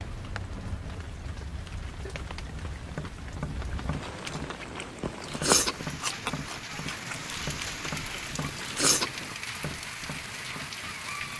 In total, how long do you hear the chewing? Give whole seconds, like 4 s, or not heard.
5 s.